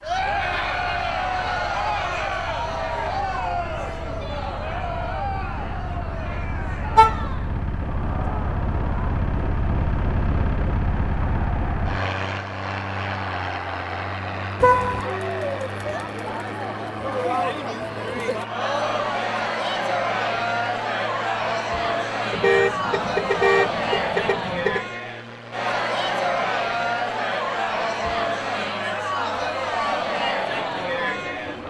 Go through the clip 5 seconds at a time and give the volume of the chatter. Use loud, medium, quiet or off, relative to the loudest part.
loud, medium, medium, loud, loud, loud, loud.